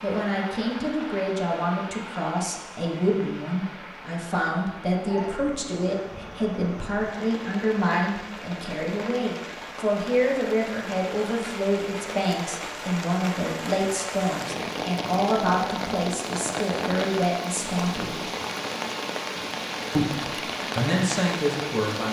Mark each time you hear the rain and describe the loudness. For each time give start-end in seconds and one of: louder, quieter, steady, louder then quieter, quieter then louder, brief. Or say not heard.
0.0-22.0 louder.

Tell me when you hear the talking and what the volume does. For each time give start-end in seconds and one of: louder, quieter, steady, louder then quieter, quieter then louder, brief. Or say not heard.
0.0-18.1 steady
19.9-22.0 brief.